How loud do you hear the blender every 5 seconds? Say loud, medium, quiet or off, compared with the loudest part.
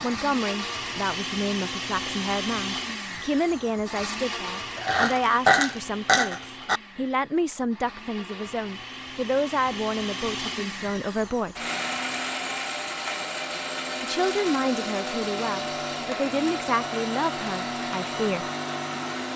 loud, medium, loud, loud.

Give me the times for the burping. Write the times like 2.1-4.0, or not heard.
4.8-6.8.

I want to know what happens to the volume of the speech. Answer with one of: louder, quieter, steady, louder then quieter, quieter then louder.
steady.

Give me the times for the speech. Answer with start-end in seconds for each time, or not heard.
0.0-11.6, 14.0-18.4.